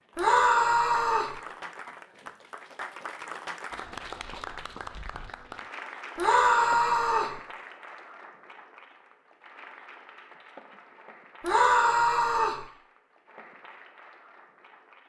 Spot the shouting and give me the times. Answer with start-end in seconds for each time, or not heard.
0.1-1.4, 6.2-7.3, 11.4-12.6.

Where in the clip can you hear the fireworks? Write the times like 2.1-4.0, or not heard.
not heard.